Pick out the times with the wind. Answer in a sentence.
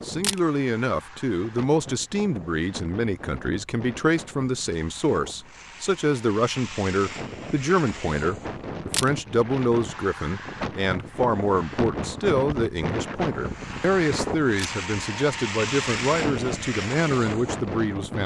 You can hear the wind from 0.0 to 18.2 s.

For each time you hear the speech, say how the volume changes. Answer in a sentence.
You can hear the speech from 0.0 to 18.2 s, at a steady volume.